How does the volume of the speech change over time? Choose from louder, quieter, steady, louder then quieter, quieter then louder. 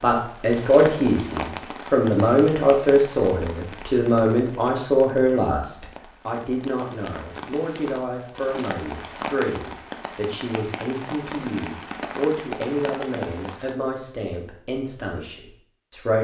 quieter.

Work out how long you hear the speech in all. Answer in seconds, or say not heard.
16 s.